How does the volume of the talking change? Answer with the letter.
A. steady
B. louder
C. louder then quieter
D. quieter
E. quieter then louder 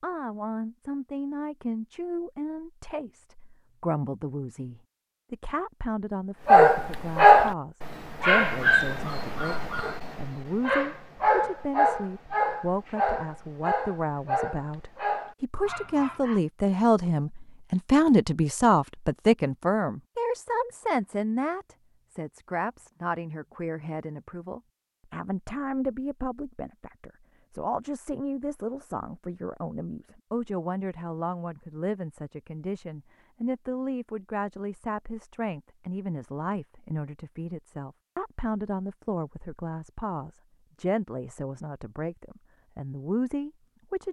C.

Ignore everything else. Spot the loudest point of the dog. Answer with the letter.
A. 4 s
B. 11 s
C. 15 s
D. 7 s
D.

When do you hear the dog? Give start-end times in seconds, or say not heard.
6.5-16.4.